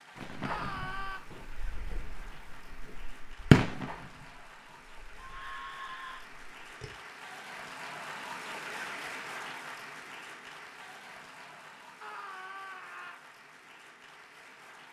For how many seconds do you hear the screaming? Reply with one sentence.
You can hear the screaming for 3 seconds altogether.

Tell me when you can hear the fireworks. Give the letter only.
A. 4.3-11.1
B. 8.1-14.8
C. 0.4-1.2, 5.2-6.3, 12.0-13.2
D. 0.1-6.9
D.